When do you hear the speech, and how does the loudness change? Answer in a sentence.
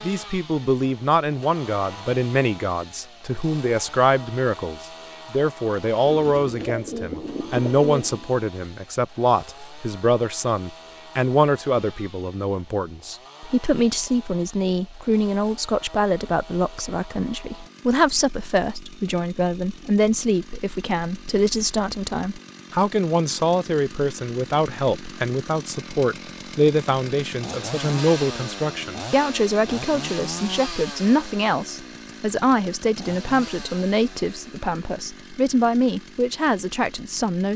The speech can be heard from 0.0 to 37.5 s, at a steady volume.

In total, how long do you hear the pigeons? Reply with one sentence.
You can hear the pigeons for 2 seconds altogether.